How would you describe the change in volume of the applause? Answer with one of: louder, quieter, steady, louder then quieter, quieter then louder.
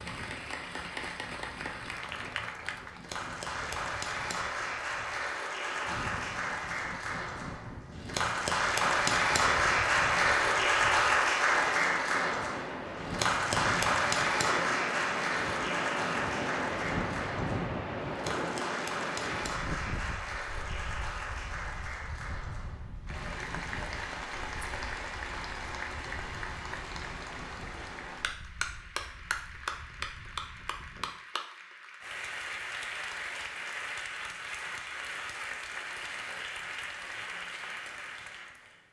louder then quieter.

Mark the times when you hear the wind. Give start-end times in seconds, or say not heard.
0.0-31.1.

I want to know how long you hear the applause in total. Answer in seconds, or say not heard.
39 s.